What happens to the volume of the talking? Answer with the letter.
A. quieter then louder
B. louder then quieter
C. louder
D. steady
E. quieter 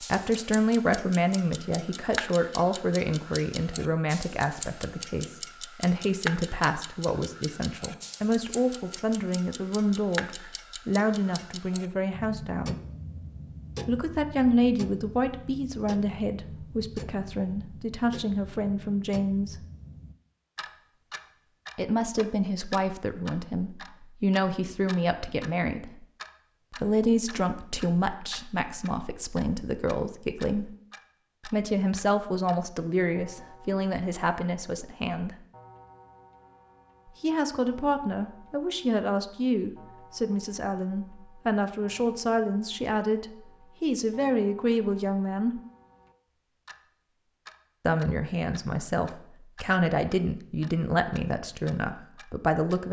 D.